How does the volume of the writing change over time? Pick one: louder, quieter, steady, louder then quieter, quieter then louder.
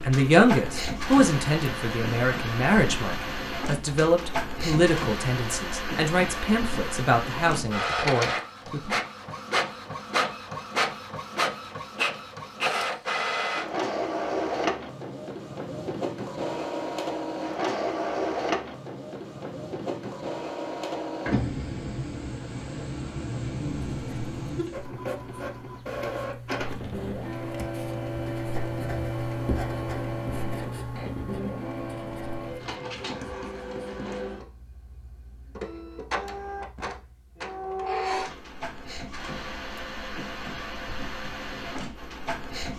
louder then quieter.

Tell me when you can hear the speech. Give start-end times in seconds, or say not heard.
0.0-8.9.